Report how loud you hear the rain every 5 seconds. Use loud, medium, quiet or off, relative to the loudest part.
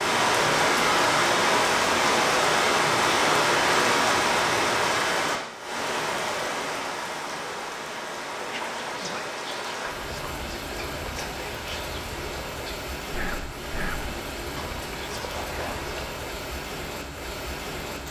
loud, medium, quiet, quiet.